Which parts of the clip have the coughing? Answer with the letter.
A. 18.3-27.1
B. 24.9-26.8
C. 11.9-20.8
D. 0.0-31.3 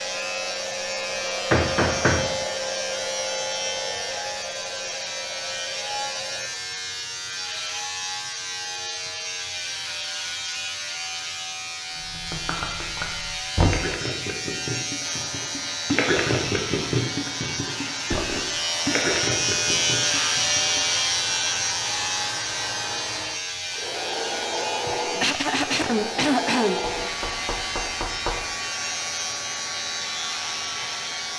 B.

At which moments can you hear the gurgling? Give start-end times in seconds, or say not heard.
11.9-20.8.